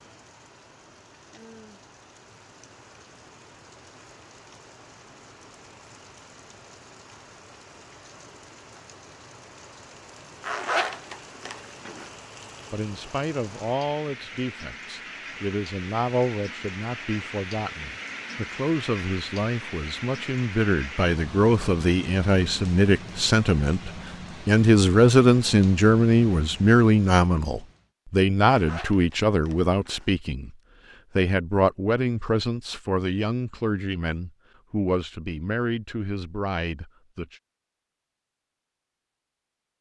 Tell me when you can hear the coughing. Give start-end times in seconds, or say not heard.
not heard.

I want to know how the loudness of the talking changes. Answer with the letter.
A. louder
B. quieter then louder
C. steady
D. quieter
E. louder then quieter
E.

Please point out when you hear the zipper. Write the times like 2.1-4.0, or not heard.
10.4-12.1, 28.4-30.1.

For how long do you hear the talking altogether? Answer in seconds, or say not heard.
24 s.